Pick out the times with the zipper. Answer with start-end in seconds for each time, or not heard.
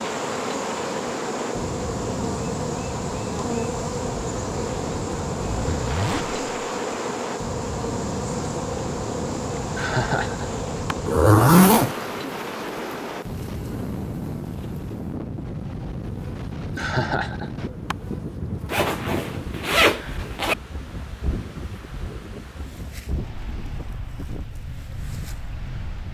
5.3-6.5, 11.1-11.9, 18.7-20.6.